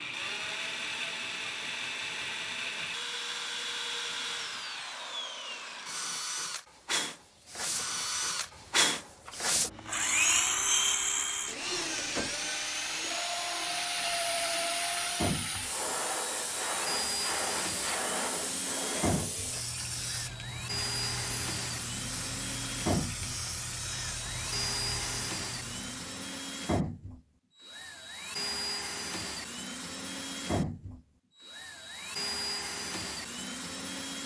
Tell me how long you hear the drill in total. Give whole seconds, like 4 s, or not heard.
34 s.